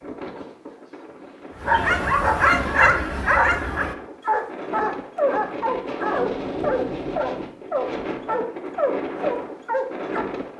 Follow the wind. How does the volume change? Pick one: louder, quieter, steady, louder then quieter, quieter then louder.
louder.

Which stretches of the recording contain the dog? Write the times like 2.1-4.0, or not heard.
1.6-10.2.